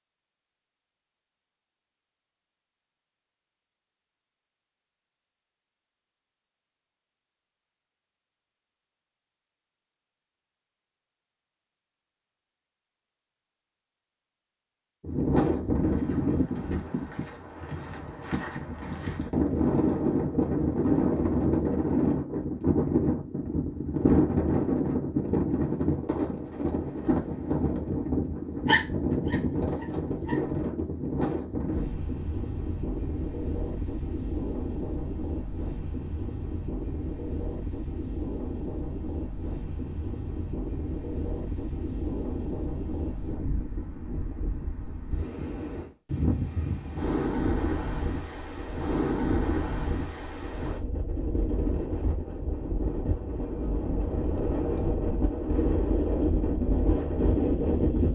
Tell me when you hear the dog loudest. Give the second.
29 s.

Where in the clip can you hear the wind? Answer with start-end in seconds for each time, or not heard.
15.0-58.0.